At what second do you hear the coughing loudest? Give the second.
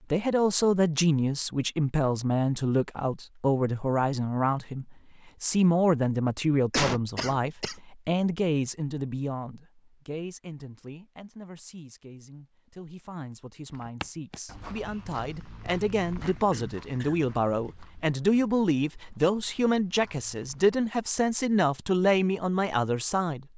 7 s.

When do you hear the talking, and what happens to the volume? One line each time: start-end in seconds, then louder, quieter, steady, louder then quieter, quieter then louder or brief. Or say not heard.
0.1-23.5 quieter then louder.